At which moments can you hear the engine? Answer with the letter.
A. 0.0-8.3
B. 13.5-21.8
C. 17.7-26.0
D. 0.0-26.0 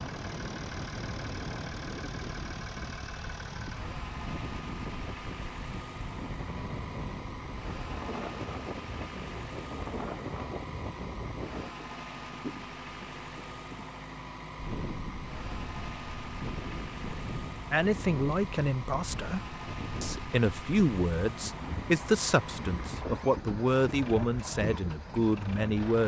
D.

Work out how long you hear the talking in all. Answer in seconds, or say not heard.
8 s.